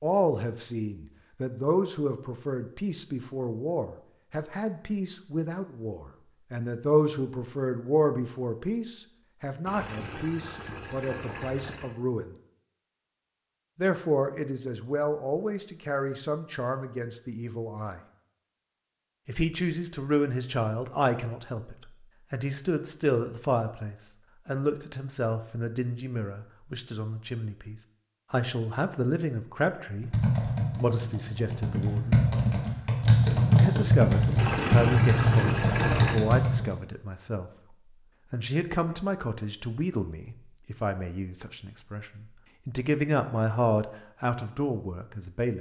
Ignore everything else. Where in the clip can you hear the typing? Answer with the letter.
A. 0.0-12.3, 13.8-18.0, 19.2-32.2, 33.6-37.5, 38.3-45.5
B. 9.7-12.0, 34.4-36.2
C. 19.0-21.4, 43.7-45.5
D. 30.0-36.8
D.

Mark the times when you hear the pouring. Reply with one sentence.
You can hear the pouring from 9.7 to 12.0 s and from 34.4 to 36.2 s.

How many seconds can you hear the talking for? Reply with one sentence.
The talking can be heard for 41 seconds in total.